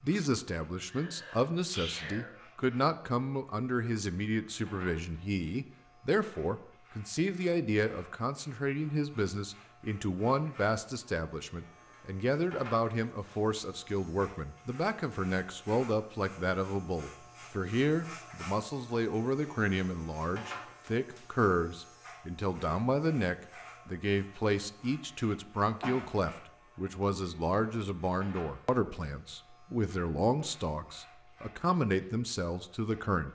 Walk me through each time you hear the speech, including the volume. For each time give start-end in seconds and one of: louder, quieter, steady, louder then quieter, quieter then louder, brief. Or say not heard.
0.0-33.2 steady.